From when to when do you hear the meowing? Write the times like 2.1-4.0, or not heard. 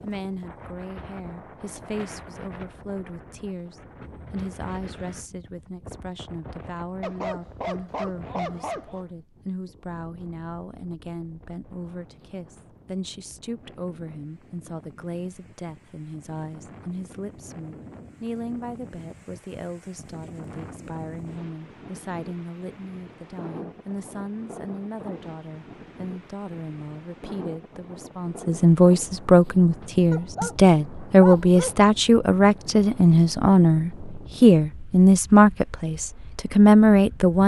not heard.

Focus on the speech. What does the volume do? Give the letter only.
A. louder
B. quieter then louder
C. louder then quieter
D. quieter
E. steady
A.